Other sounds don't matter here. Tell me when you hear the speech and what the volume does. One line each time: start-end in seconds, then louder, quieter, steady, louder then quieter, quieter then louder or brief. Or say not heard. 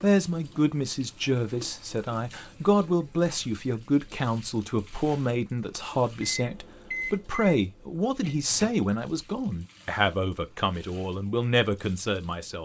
0.0-12.5 steady.